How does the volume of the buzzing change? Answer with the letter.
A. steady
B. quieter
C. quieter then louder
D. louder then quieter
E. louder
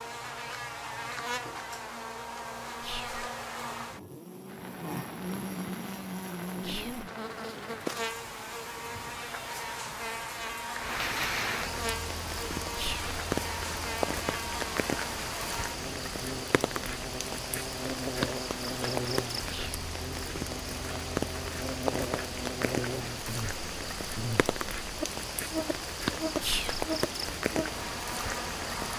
A.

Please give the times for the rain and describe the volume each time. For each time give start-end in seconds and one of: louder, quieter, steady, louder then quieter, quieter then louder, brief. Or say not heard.
4.5-28.9 louder.